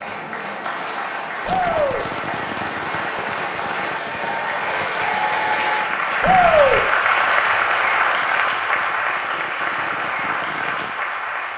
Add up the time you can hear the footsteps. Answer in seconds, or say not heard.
not heard.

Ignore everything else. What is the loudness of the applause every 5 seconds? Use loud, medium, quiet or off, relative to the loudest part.
medium, loud, medium.